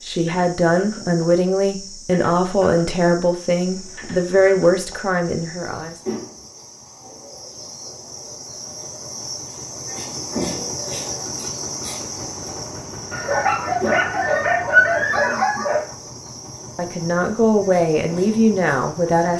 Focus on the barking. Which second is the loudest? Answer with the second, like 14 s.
15 s.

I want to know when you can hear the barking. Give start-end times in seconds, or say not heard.
13.1-15.8.